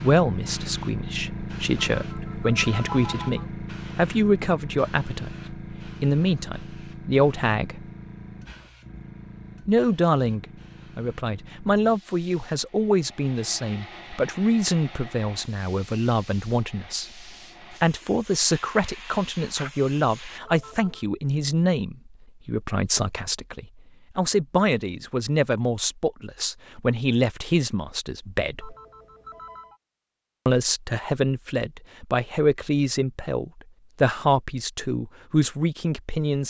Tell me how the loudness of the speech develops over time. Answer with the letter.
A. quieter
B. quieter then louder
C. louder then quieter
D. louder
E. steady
E.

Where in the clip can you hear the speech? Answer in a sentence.
You can hear the speech from 0.0 to 7.8 s, from 9.7 to 28.8 s and from 30.4 to 36.4 s.